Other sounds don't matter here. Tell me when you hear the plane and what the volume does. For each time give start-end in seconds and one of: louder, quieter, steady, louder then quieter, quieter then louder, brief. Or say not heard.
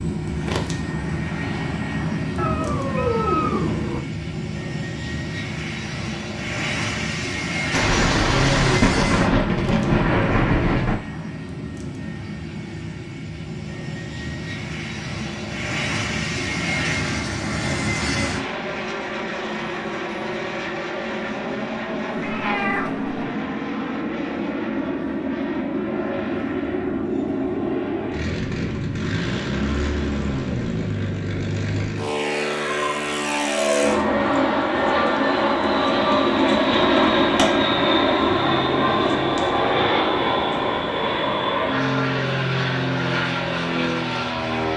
0.0-44.7 louder.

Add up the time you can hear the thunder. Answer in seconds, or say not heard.
3 s.